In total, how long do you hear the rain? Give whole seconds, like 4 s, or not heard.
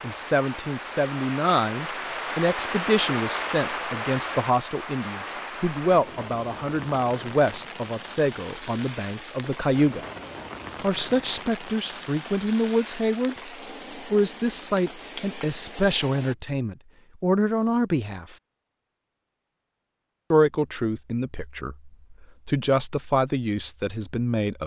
16 s.